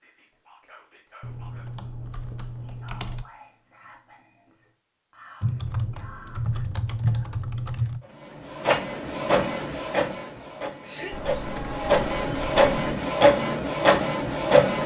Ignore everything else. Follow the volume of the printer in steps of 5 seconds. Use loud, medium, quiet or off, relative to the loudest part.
off, loud, loud.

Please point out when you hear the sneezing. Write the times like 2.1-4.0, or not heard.
10.3-11.3.